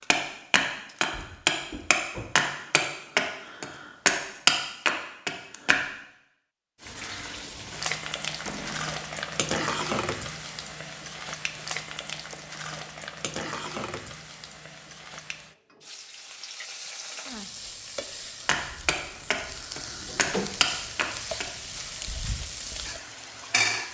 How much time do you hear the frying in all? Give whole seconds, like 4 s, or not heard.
17 s.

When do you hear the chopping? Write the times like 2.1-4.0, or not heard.
0.1-5.8, 18.4-21.4.